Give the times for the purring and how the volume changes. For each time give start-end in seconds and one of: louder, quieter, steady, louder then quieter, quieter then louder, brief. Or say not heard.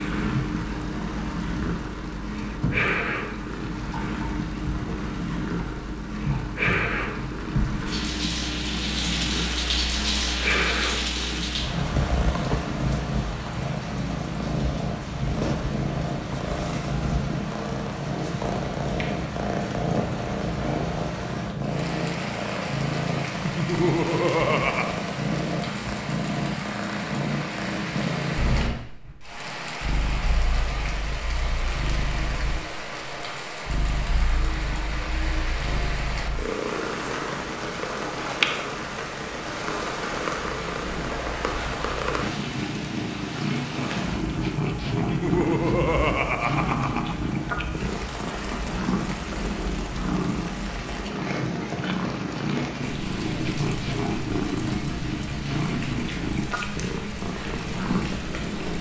0.0-58.7 steady.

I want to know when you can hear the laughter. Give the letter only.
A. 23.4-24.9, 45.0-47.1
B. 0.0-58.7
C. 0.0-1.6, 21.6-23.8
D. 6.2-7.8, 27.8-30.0
A.